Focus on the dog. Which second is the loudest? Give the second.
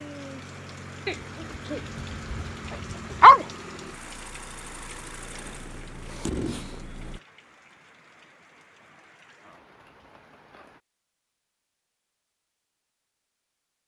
3 s.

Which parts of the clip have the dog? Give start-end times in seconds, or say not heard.
1.1-3.5.